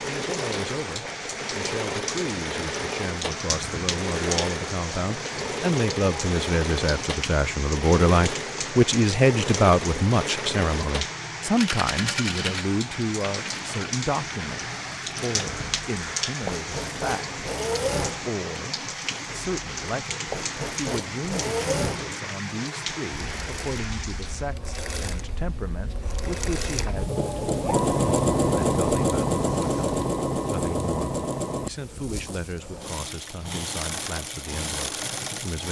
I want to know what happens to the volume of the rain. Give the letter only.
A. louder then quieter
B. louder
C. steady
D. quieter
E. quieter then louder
C.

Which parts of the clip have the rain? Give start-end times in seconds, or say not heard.
0.0-24.6.